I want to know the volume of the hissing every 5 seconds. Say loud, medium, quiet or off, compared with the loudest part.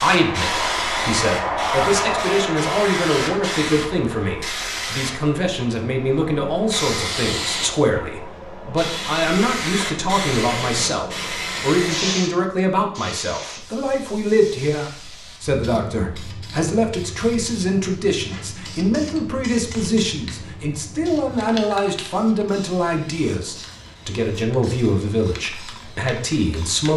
loud, medium, medium, quiet, quiet, quiet.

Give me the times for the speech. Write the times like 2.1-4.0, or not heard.
0.0-26.9.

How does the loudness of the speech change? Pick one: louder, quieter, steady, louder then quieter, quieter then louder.
steady.